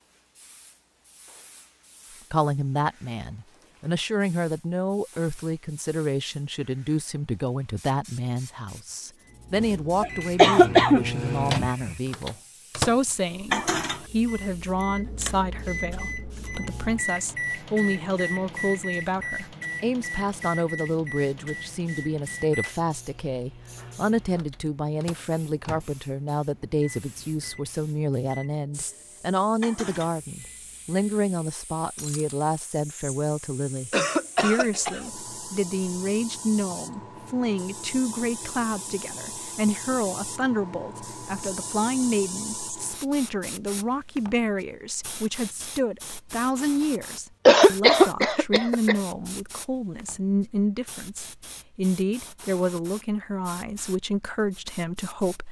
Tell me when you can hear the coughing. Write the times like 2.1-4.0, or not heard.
10.0-11.9, 33.9-35.1, 47.5-49.0.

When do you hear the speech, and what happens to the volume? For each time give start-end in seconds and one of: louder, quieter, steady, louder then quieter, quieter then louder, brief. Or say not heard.
2.3-55.4 steady.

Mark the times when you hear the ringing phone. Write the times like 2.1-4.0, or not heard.
not heard.